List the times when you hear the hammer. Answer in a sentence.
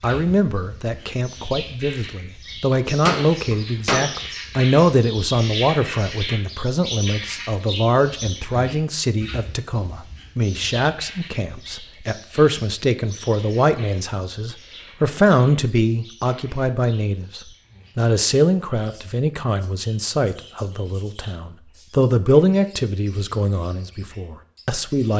You can hear the hammer from 2.7 to 4.1 s.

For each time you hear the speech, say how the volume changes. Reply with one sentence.
You can hear the speech from 0.0 to 25.1 s, at a steady volume.